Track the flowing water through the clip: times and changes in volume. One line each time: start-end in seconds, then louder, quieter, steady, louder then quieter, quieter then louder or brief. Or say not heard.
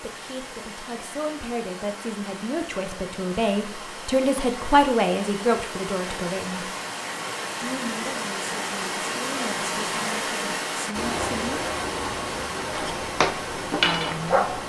0.0-14.6 louder.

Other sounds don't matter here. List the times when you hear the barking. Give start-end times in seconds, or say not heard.
12.7-14.6.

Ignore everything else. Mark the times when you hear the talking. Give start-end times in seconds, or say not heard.
0.0-6.7, 7.6-11.7, 13.8-14.6.